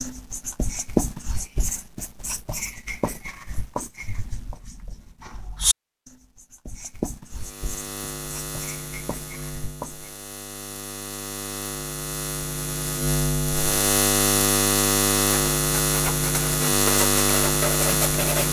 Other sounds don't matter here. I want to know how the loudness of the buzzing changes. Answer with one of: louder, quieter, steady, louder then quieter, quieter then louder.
louder.